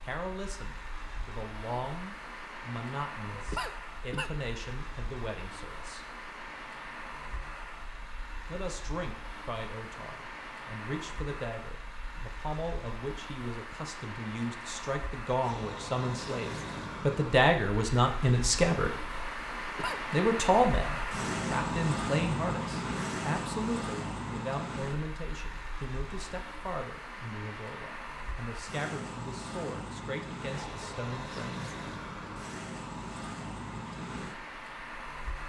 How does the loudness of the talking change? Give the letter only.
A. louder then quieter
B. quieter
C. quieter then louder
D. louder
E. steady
A.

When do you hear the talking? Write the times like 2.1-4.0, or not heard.
0.0-6.0, 8.4-18.9, 20.1-31.7.